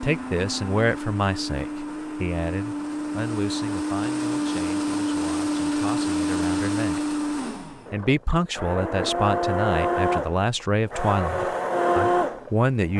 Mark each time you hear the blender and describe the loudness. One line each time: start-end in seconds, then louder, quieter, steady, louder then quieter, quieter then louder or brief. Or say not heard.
0.0-12.9 louder.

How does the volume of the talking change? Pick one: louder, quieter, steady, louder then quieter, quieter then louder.
quieter then louder.